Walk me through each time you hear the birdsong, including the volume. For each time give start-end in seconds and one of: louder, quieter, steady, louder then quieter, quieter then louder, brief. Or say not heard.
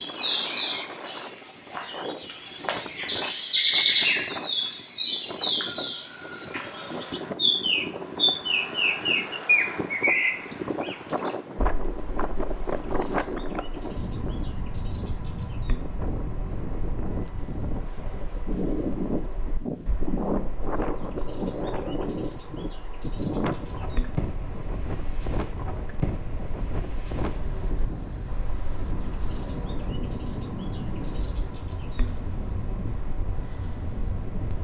0.0-34.5 quieter.